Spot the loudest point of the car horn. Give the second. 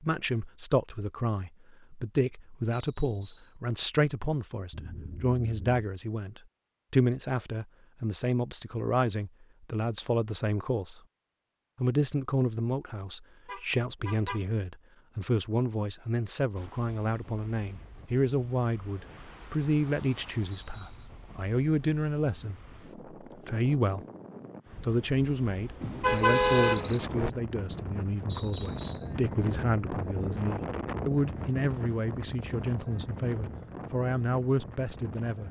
26 s.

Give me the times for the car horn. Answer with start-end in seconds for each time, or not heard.
4.7-5.8, 13.4-14.4, 25.8-27.3.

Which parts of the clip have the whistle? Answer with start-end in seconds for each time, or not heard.
2.7-3.5, 20.5-21.1, 28.2-29.1.